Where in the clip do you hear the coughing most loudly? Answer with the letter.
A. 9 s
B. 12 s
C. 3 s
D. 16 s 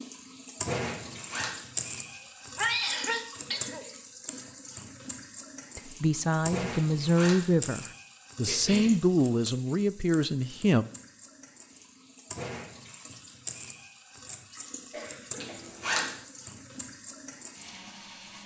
C.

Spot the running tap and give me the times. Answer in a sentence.
The running tap can be heard from 0.0 to 18.4 s.